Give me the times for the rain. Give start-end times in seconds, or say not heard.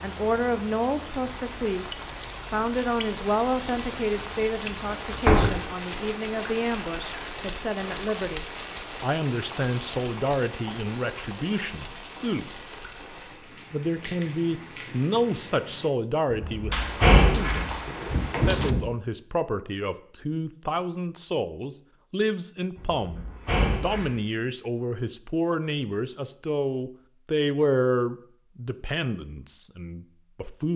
0.0-15.9.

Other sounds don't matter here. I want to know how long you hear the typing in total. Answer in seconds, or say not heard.
2 s.